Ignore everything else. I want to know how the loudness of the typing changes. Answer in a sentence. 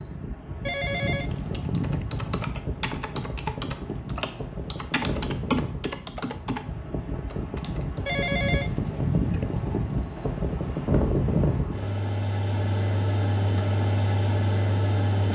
The loudness of the typing goes up, then down.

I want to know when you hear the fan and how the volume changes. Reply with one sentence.
You can hear the fan from 0.0 to 15.3 s, getting louder.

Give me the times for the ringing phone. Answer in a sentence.
You can hear the ringing phone from 0.7 to 2.5 s and from 8.1 to 9.9 s.